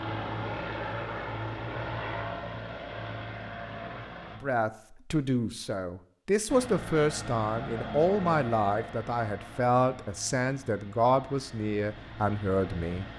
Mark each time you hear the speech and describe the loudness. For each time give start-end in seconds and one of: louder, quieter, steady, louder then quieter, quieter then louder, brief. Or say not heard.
4.4-13.1 steady.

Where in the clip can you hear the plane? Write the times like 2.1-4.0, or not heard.
0.0-4.4, 6.5-13.1.